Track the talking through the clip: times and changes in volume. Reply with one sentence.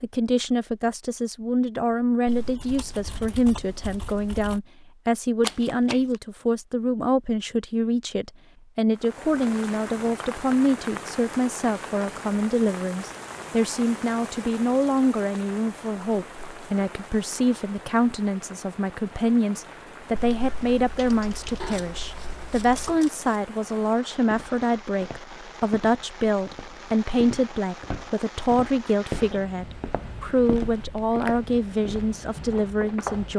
You can hear the talking from 0.0 to 33.3 s, at a steady volume.